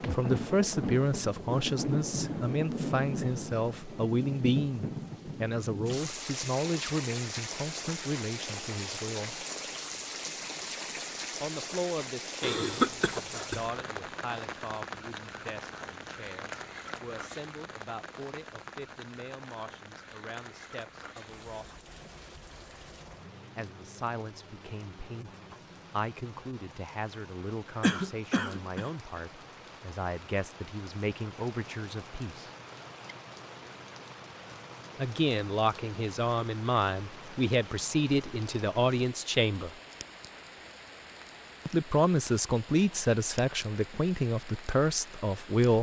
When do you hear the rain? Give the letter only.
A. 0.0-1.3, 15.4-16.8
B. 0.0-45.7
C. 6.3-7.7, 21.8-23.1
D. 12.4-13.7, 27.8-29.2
B.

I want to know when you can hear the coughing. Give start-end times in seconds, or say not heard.
12.4-13.7, 27.8-29.2.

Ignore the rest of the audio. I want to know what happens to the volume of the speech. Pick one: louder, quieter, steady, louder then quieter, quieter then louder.
quieter then louder.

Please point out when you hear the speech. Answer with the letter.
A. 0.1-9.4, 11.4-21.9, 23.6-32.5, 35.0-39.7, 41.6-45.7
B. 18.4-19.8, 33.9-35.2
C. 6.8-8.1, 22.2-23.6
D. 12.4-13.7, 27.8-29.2
A.